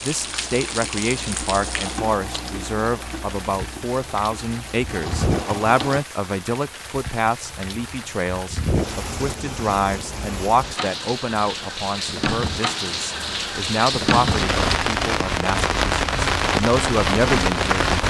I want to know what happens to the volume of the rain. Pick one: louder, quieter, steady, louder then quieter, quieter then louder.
louder.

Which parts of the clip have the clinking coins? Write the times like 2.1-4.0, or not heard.
not heard.